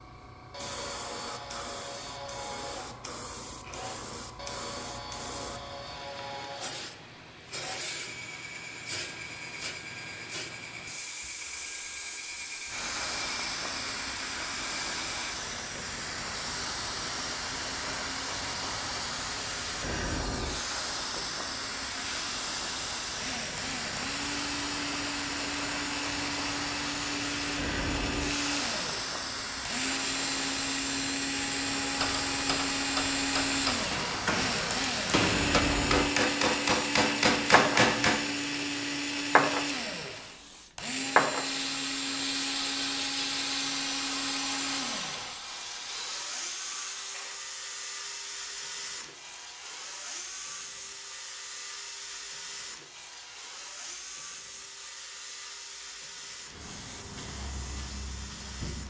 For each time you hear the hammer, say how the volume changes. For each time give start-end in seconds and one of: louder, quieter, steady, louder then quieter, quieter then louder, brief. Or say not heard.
31.9-38.2 louder.